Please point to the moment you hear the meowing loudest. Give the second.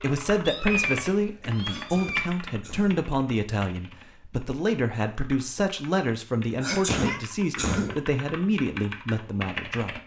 1 s.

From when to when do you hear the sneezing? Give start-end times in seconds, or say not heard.
1.6-3.0, 6.6-8.0.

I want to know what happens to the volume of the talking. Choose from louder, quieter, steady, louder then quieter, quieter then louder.
steady.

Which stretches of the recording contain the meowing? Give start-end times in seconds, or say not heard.
0.5-2.3, 6.6-7.2.